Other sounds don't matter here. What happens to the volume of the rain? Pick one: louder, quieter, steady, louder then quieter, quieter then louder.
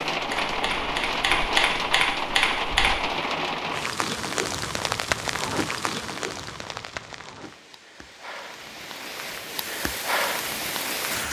quieter then louder.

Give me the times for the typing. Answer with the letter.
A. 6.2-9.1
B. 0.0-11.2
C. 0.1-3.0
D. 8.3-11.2
C.